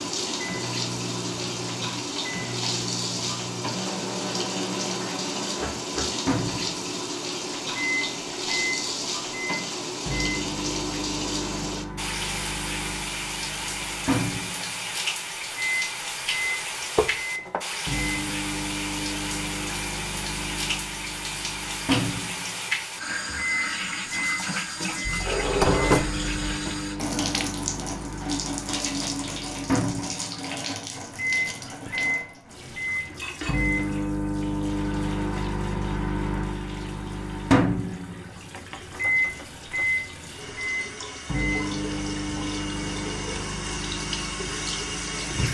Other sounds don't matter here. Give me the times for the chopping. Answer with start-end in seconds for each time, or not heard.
not heard.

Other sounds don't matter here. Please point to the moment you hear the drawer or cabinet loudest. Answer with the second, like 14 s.
26 s.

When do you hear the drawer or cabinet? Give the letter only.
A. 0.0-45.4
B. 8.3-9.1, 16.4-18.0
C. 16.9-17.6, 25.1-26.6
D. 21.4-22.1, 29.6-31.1
C.